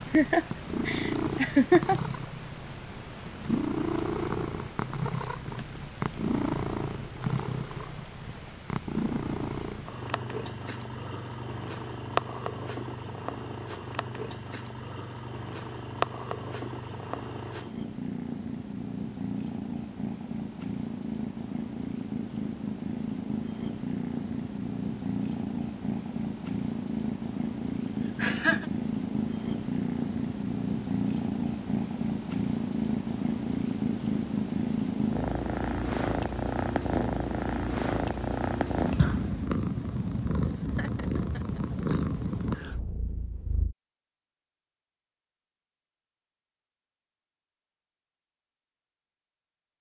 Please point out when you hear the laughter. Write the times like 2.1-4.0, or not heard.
0.1-2.0, 28.1-28.6, 40.8-41.8.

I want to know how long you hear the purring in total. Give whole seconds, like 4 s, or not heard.
44 s.